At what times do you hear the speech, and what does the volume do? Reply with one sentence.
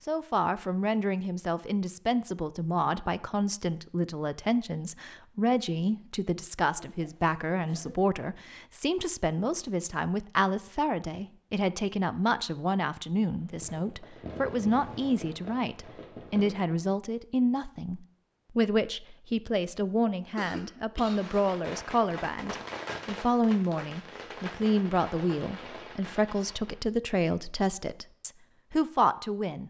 You can hear the speech from 0.1 to 29.6 s, at a steady volume.